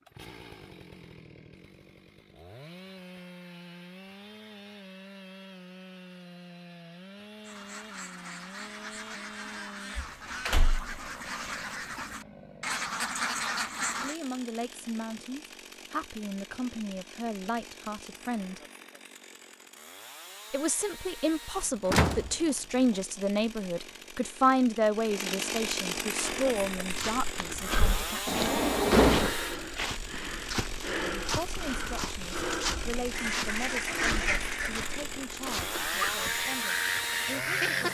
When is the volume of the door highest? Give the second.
29 s.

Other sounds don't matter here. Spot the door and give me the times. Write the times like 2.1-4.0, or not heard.
9.9-10.9, 21.9-22.4, 28.2-29.3.